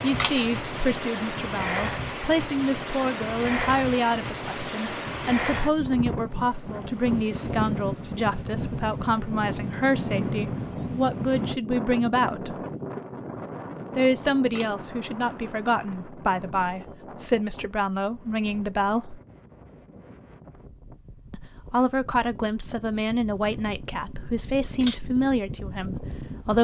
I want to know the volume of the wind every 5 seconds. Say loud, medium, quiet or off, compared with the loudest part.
loud, loud, loud, quiet, quiet, medium.